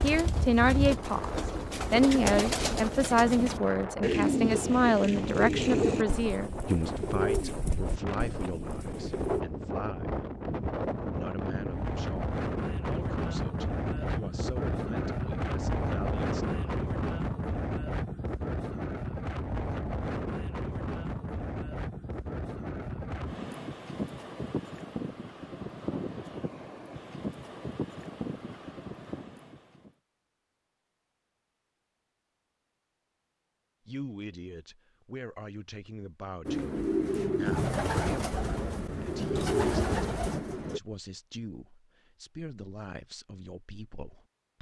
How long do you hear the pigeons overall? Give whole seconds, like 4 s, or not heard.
14 s.